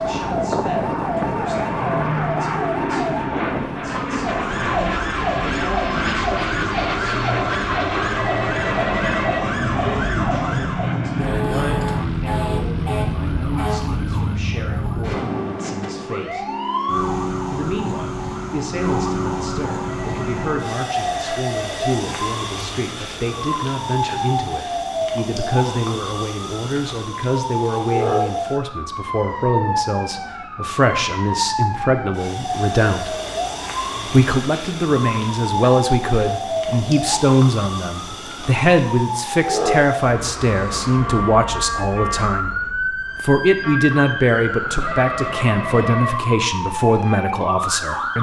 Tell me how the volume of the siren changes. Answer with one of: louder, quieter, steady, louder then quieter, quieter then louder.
steady.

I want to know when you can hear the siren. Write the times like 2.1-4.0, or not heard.
0.0-48.1.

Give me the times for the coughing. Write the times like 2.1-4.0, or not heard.
not heard.